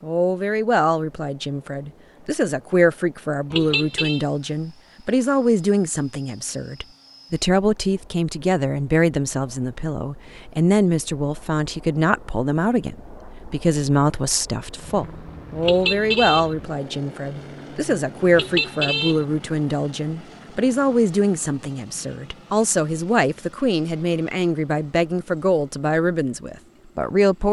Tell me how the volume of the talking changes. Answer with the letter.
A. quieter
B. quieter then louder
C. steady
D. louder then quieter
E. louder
C.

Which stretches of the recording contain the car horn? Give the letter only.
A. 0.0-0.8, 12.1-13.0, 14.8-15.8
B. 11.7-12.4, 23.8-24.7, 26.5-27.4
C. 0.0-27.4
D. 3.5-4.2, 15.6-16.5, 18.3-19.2
D.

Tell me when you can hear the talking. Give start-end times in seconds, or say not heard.
0.0-27.4.